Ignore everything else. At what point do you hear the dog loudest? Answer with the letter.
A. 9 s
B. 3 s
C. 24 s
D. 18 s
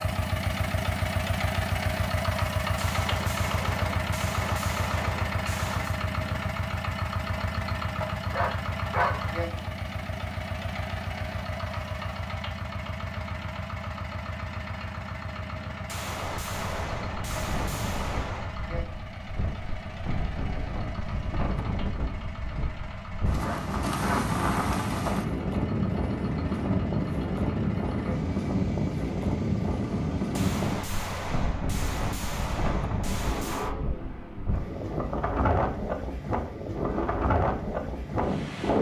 A.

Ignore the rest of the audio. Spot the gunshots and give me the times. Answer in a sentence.
The gunshots can be heard from 2.8 to 6.0 s, from 15.8 to 18.6 s and from 30.4 to 33.8 s.